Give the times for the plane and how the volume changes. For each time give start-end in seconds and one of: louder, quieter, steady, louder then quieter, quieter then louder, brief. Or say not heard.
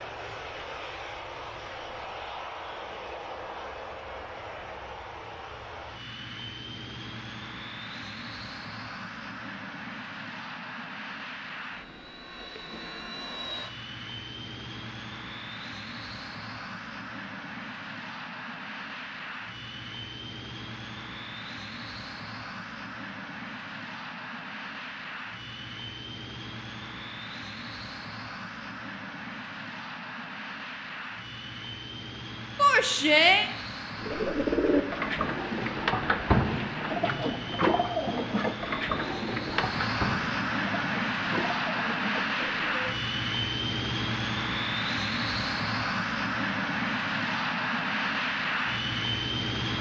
0.0-49.7 louder.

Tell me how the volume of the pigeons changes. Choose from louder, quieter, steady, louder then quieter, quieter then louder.
quieter.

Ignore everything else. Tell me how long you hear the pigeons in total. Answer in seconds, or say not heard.
9 s.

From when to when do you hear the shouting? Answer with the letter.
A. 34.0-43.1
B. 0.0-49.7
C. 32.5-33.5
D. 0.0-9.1
C.